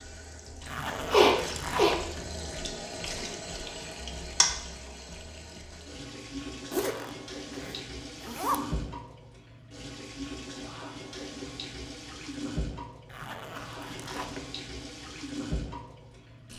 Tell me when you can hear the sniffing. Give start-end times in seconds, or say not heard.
1.1-2.0.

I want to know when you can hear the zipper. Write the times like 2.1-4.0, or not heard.
0.7-2.0, 6.7-8.6, 13.1-14.5.